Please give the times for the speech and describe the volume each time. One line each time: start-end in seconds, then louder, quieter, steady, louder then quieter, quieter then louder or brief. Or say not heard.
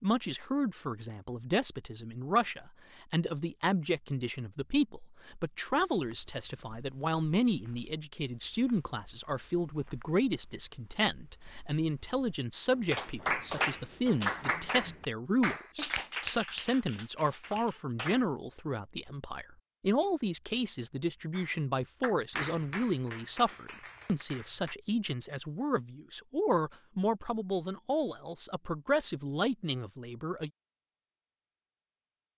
0.0-30.5 steady.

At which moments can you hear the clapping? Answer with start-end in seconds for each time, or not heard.
12.8-18.2, 21.3-24.8.